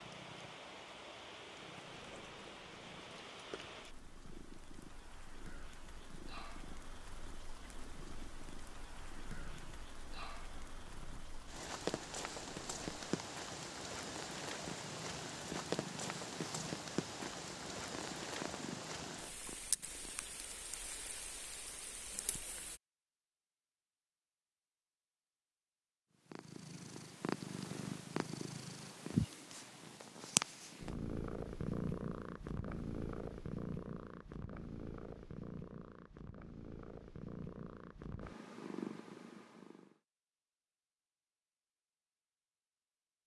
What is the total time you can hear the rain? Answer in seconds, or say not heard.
23 s.